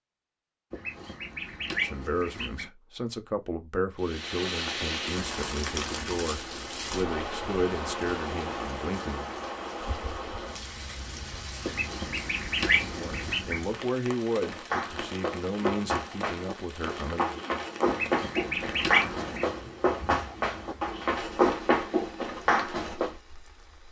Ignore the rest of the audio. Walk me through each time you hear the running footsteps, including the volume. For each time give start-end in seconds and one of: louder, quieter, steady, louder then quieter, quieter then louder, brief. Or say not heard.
14.4-23.1 louder.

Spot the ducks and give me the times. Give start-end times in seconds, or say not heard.
0.7-2.6, 11.7-13.6, 17.9-19.5.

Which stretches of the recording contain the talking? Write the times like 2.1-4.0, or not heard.
1.8-9.3, 12.9-17.4.